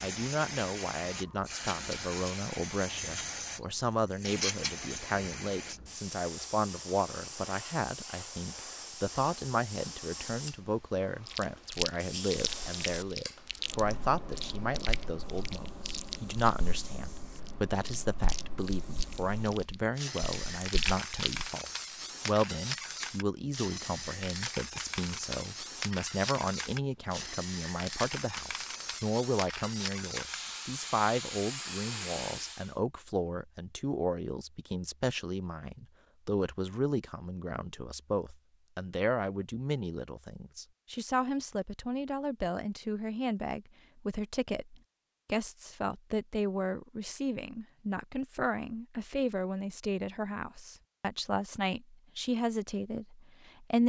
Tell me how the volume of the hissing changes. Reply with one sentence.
The loudness of the hissing goes down, then up.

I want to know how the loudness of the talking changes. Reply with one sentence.
The loudness of the talking stays about the same.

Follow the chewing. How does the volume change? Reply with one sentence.
The volume of the chewing goes down, then up.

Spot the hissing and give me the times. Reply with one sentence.
You can hear the hissing from 0.0 to 32.8 s.